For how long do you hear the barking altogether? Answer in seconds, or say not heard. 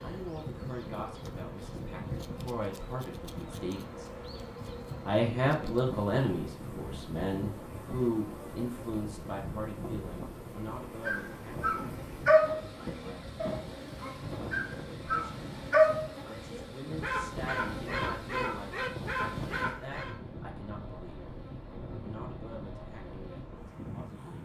9 s.